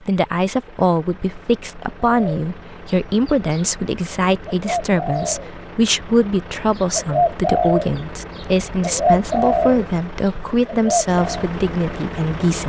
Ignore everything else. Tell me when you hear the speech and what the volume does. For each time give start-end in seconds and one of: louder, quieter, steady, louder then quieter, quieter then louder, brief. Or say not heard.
0.1-12.6 steady.